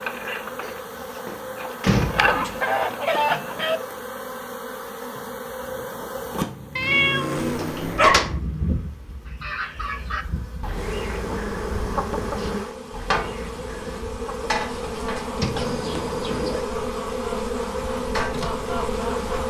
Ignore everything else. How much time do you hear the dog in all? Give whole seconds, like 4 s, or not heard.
not heard.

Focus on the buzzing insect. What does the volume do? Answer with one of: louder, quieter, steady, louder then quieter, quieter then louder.
louder.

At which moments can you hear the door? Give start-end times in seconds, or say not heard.
0.6-2.4, 7.5-8.3, 15.3-15.8.